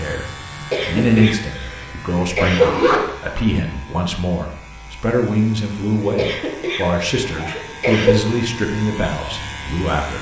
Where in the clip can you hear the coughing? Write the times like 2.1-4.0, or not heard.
0.7-2.7, 6.2-8.2.